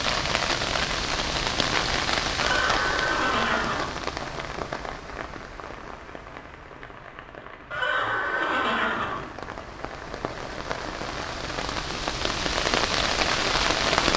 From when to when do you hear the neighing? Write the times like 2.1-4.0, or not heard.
2.4-4.0, 7.7-9.3.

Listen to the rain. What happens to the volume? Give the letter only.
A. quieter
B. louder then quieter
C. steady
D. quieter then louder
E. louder
D.